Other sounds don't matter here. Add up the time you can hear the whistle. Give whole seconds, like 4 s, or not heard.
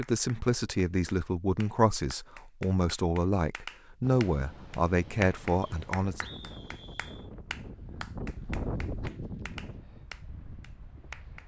2 s.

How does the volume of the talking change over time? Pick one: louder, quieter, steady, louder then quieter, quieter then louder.
steady.